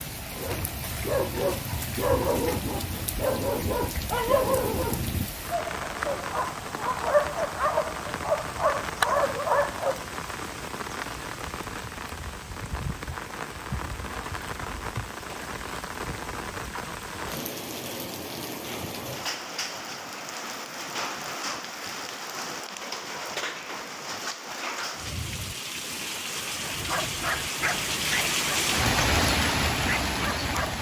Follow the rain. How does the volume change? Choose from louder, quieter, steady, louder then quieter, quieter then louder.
louder.